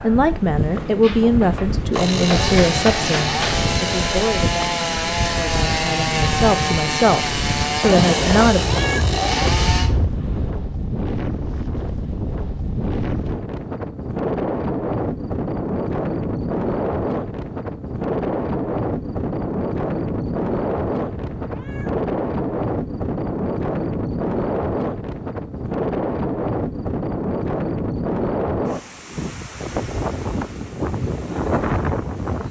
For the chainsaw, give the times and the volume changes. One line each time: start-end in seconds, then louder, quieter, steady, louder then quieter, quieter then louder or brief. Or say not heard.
1.9-9.9 steady.